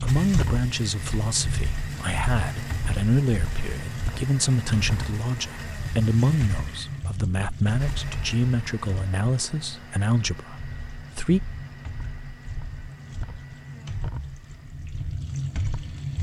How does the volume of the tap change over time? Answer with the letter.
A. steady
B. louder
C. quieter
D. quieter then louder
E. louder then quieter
D.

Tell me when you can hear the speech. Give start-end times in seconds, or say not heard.
0.0-11.4.